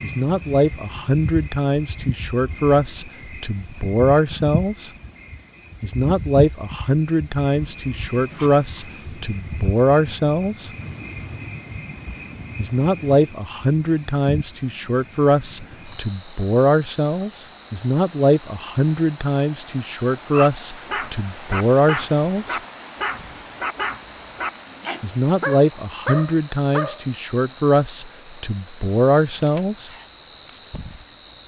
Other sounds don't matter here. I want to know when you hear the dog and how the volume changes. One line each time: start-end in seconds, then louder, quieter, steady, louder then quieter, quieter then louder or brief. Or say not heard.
20.3-27.6 steady.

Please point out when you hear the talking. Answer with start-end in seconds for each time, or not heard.
0.0-4.9, 5.8-10.7, 12.6-22.6, 25.0-29.9.